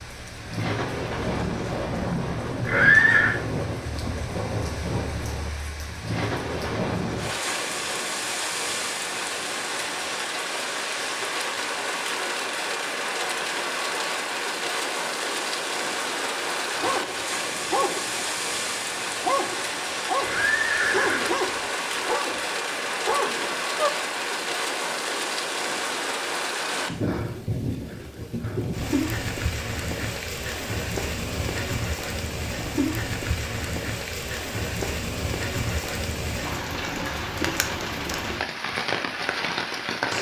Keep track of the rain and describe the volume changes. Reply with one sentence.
The loudness of the rain stays about the same.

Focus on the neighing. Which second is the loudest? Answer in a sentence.
The loudest moment of the neighing is at 3 seconds.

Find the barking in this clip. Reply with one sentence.
The barking can be heard from 16.8 to 23.9 s.